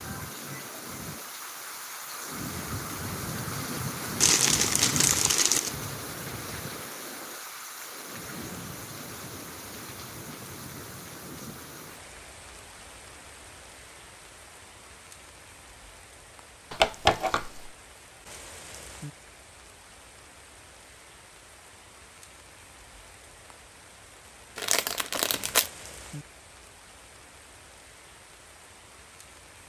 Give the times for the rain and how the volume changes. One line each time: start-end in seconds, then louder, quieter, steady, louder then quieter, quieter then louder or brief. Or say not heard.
0.0-29.6 quieter.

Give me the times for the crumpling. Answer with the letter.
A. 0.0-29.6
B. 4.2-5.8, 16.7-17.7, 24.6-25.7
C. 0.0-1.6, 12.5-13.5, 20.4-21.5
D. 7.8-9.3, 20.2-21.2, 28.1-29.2
B.